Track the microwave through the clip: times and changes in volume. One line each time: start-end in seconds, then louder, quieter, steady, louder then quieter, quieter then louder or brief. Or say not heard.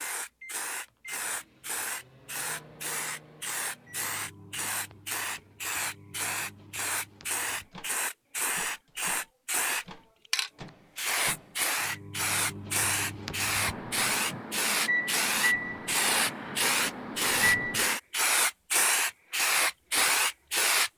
0.2-18.0 louder.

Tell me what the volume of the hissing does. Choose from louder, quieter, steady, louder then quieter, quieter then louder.
louder.